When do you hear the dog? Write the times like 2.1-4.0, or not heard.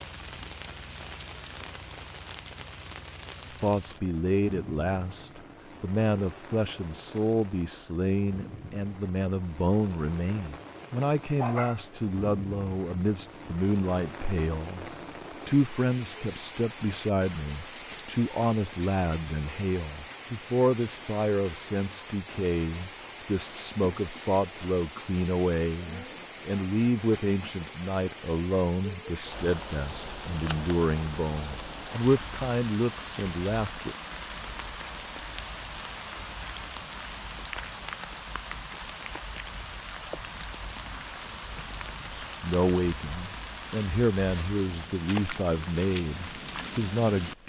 11.3-12.3.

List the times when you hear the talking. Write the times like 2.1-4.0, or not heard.
3.6-34.0, 42.2-47.4.